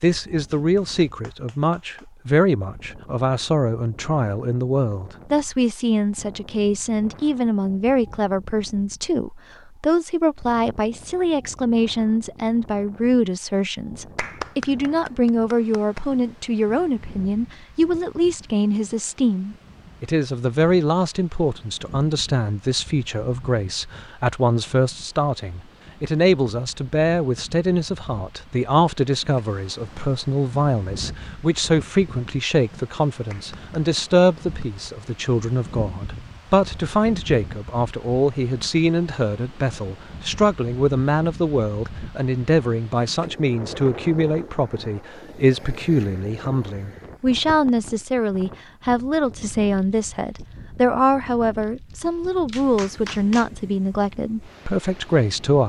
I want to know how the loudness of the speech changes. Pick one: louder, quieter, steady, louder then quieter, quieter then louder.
steady.